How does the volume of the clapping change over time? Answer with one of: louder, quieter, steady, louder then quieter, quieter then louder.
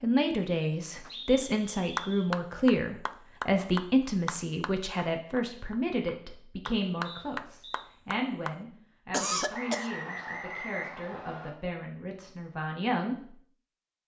quieter then louder.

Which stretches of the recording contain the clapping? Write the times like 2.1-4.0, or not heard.
1.1-8.6.